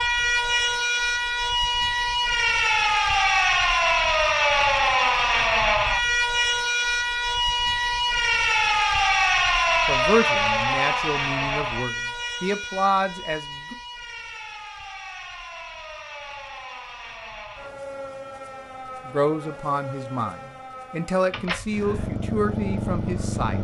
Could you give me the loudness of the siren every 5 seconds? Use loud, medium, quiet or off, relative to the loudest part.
loud, loud, medium, quiet, quiet.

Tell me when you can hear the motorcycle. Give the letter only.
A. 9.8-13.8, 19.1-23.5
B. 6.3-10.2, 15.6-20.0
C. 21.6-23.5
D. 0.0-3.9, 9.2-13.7
C.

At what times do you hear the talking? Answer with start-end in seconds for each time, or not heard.
9.8-13.8, 19.1-23.5.